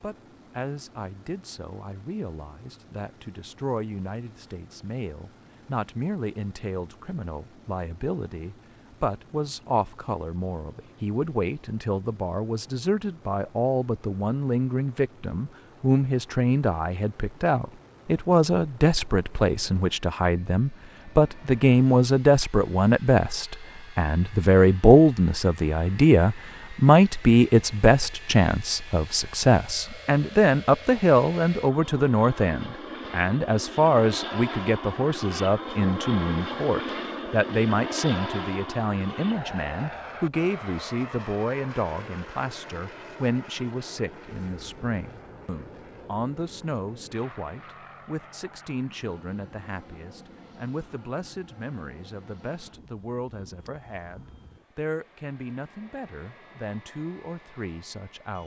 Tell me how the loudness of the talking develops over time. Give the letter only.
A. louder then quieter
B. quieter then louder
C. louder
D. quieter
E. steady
A.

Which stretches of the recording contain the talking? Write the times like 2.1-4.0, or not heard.
0.0-58.4.